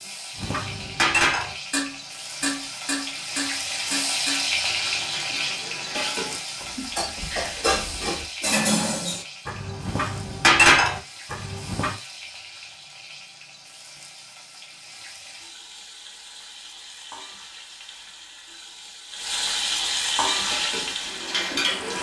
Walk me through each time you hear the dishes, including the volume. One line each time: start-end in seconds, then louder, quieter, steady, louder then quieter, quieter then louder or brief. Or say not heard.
0.3-11.9 quieter then louder
20.3-21.9 brief.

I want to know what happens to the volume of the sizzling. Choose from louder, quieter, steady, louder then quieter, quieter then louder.
quieter then louder.